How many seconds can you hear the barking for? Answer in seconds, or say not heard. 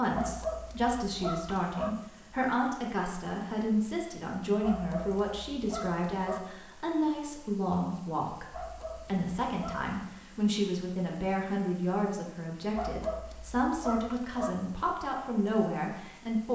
7 s.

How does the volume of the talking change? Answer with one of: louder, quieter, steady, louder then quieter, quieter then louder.
steady.